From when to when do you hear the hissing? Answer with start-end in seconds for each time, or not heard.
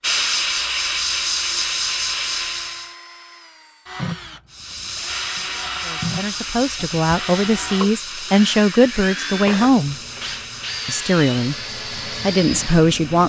0.0-3.0, 4.5-13.2.